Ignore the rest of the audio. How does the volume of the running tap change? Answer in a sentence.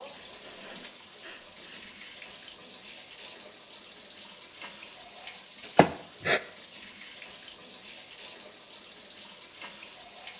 The loudness of the running tap stays about the same.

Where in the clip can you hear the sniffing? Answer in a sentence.
The sniffing can be heard from 0.1 to 2.0 s and from 5.8 to 6.4 s.